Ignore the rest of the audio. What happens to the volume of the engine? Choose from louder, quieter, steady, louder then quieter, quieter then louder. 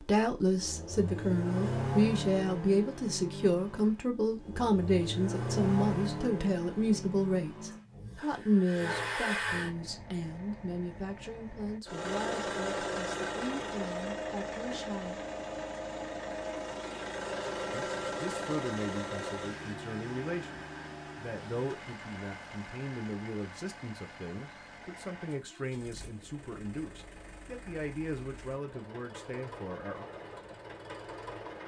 quieter.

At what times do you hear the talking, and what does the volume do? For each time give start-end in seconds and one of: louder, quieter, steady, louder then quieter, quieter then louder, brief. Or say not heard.
0.0-15.2 quieter
17.7-30.1 steady.